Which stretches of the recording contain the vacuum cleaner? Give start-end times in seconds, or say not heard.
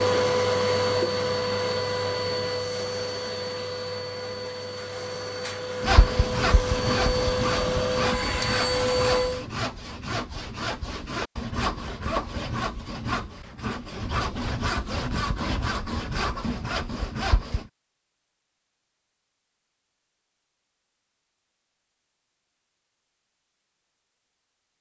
0.0-9.4.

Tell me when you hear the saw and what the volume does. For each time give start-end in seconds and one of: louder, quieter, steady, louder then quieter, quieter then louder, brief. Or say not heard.
5.8-17.7 steady.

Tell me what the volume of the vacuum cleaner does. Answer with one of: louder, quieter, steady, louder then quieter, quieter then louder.
quieter then louder.